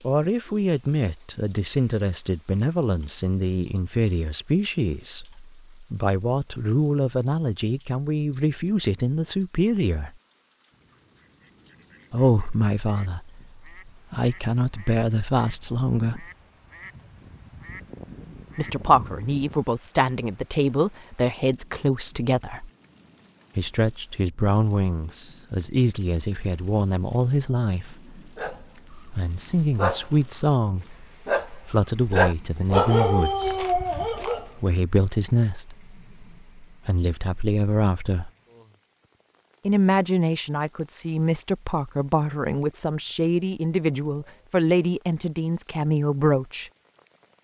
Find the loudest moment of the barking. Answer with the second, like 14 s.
33 s.